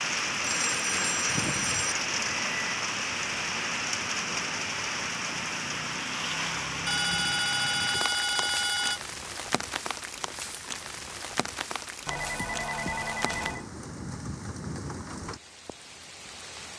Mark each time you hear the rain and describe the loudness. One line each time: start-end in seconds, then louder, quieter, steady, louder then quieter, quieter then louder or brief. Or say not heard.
0.0-16.7 quieter.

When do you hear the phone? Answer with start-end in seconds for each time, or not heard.
0.4-1.9, 6.8-9.0, 12.1-13.7.